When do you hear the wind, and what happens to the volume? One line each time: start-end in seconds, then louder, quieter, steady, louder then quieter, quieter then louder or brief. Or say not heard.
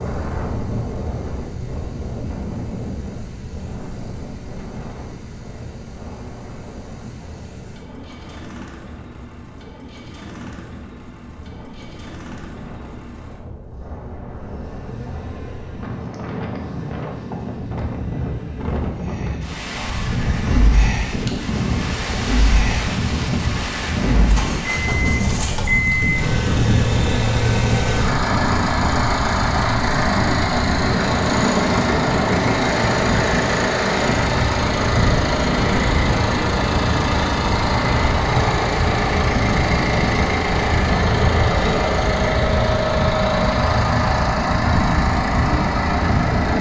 0.0-46.5 louder.